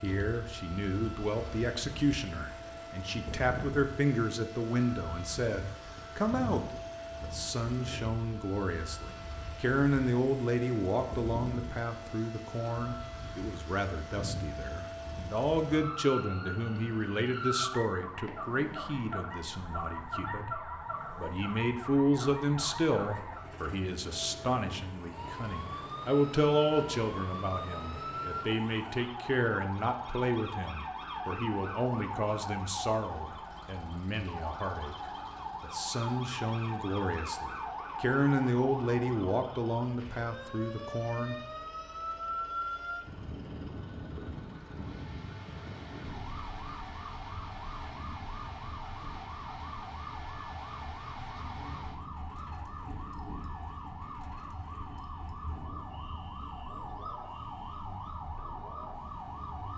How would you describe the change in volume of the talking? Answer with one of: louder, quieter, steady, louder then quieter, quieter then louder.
steady.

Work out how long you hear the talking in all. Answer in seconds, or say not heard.
41 s.